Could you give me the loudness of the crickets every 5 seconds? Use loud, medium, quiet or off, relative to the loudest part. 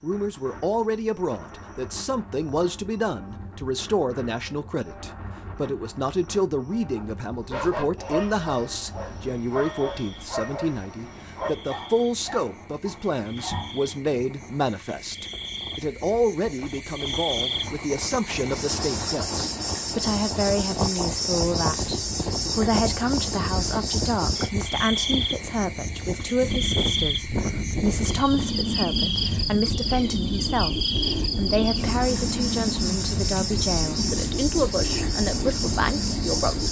quiet, quiet, quiet, loud, loud, loud, loud, loud.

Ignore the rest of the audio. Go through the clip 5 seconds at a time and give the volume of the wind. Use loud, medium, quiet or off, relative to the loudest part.
quiet, quiet, quiet, medium, loud, loud, loud, loud.